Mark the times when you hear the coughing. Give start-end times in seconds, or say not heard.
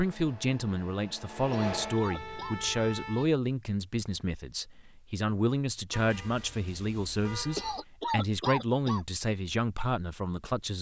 1.5-2.6, 7.5-9.1.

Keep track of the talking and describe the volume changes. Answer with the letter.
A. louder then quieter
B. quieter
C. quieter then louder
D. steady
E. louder
D.